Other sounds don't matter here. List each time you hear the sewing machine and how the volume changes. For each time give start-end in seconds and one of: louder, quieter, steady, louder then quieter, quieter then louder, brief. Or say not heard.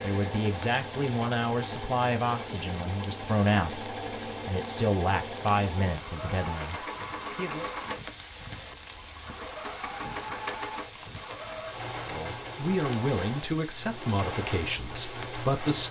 0.0-15.8 steady.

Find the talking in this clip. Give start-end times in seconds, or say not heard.
0.0-7.7, 12.1-15.8.